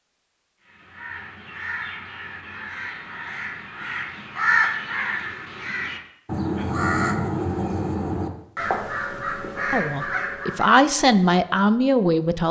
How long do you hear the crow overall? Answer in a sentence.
You can hear the crow for 10 seconds altogether.